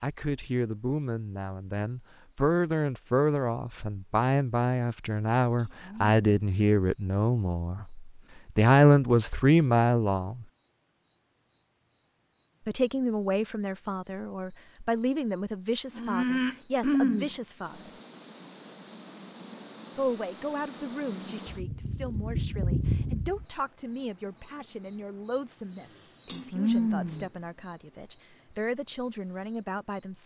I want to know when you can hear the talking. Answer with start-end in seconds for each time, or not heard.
0.0-10.4, 12.7-17.9, 19.9-30.2.